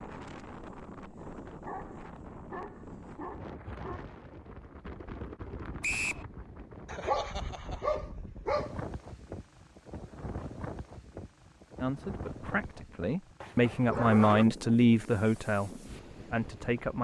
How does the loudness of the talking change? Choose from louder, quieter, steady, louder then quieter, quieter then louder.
louder then quieter.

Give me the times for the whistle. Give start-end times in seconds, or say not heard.
5.8-6.2.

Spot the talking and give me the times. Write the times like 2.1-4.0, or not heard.
11.8-16.9.